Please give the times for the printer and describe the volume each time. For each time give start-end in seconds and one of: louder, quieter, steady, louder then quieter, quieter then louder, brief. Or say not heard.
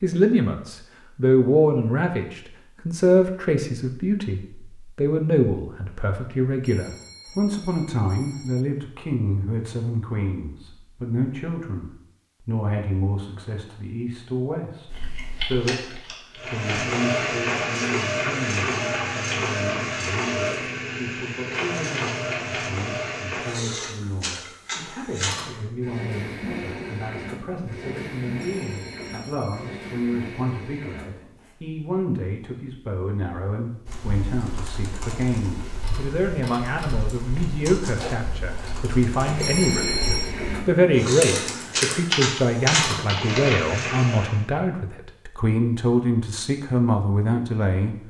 16.4-31.6 quieter
35.8-44.4 louder.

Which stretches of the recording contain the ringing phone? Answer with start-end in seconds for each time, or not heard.
6.6-8.7, 28.4-29.8, 39.4-40.4.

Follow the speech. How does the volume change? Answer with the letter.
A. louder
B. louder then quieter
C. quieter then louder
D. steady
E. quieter
C.